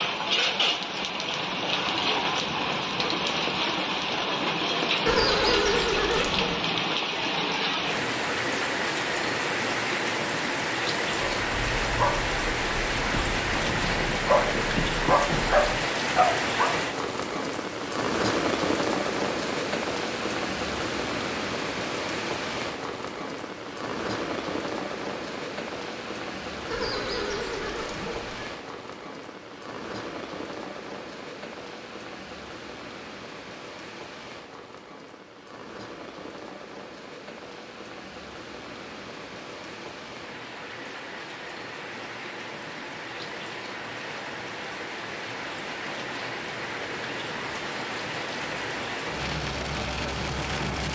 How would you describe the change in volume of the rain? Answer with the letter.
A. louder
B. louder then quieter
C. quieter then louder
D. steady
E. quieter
C.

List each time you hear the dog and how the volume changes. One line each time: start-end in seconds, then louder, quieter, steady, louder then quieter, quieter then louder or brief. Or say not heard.
11.2-16.8 quieter then louder.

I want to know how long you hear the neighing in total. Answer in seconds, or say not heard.
3 s.